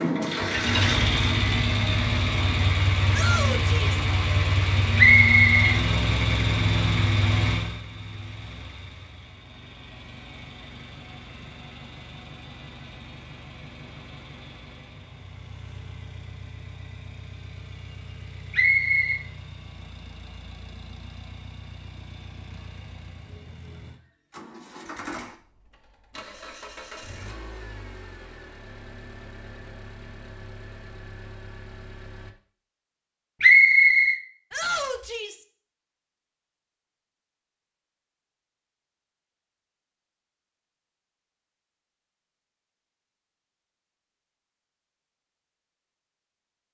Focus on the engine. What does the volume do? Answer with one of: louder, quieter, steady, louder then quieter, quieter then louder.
quieter.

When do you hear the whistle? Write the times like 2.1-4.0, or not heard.
5.0-5.8, 18.5-19.2, 33.4-34.2.